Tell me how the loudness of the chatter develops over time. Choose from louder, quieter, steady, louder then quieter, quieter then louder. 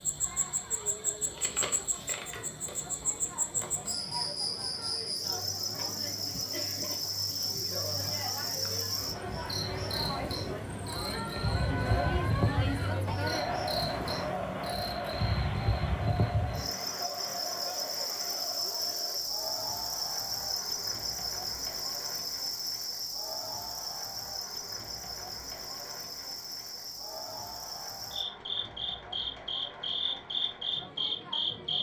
louder then quieter.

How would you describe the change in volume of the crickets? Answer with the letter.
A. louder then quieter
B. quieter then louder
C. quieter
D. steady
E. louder
D.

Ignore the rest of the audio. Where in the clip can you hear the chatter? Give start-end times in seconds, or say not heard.
0.0-31.7.